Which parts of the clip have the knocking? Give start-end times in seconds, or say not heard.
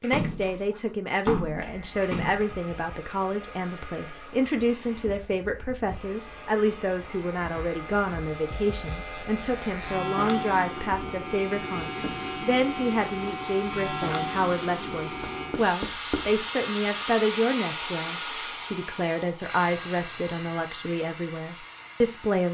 15.2-16.3.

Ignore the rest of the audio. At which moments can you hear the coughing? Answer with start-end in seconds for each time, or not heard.
not heard.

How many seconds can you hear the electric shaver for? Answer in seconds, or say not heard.
14 s.